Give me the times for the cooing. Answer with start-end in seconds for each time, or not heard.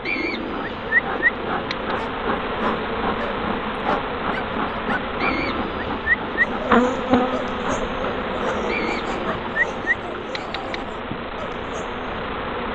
0.1-1.9, 5.2-6.7, 8.7-10.9.